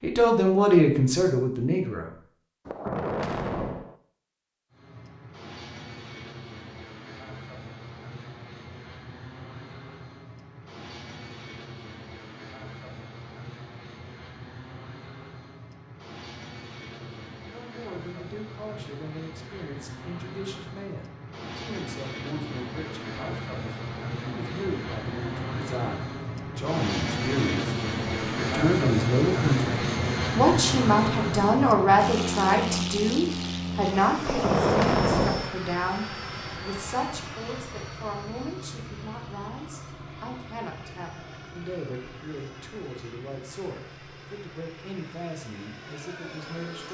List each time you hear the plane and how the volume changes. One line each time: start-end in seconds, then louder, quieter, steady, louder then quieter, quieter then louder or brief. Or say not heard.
4.7-46.8 louder then quieter.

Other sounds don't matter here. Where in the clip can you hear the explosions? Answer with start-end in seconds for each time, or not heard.
2.6-4.0, 34.2-35.5.